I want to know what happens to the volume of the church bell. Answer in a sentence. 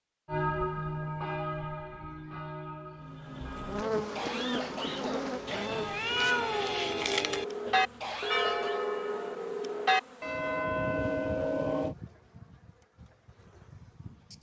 The volume of the church bell goes down, then up.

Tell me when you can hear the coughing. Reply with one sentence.
The coughing can be heard from 4.0 to 5.7 s and from 7.7 to 8.8 s.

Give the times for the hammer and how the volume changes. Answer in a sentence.
You can't hear the hammer here.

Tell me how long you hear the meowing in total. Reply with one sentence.
The meowing can be heard for 2 seconds in total.